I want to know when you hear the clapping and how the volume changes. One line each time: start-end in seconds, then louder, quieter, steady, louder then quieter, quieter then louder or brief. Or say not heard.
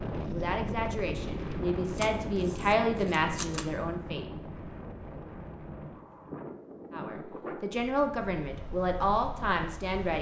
not heard.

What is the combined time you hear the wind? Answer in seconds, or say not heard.
10 s.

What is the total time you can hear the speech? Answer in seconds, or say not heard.
7 s.